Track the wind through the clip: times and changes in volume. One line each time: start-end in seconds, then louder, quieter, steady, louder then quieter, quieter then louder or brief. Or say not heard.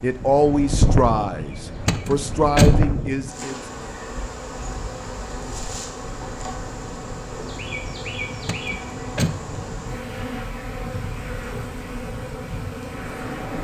0.0-13.6 quieter.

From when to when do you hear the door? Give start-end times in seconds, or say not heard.
1.9-2.8, 8.4-9.4.